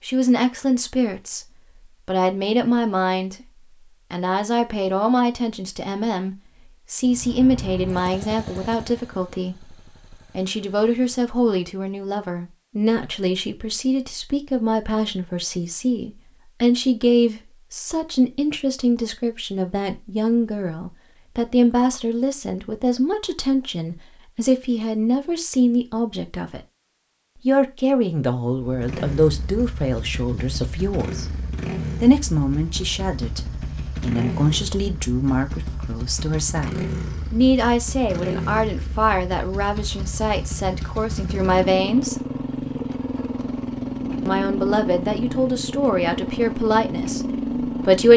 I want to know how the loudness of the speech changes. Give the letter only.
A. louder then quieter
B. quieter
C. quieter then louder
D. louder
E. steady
E.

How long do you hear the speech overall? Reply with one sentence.
You can hear the speech for 45 seconds altogether.